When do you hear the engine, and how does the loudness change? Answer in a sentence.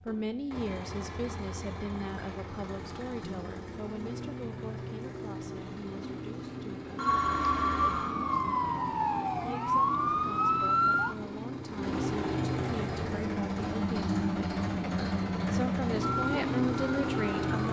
The engine can be heard from 0.0 to 17.6 s, getting louder.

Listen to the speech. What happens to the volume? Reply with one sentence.
The loudness of the speech goes down, then up.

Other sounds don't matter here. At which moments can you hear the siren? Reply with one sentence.
The siren can be heard from 7.0 to 11.2 s and from 16.0 to 17.6 s.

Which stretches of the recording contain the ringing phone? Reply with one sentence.
You can hear the ringing phone from 7.0 to 8.2 s.